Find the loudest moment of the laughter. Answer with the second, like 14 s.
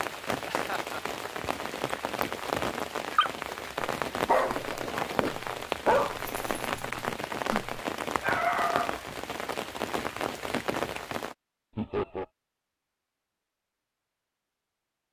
12 s.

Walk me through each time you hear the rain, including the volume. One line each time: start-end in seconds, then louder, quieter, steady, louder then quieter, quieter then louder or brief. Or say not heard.
0.0-11.3 steady.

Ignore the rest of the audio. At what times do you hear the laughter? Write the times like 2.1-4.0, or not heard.
0.5-1.0, 11.8-12.2.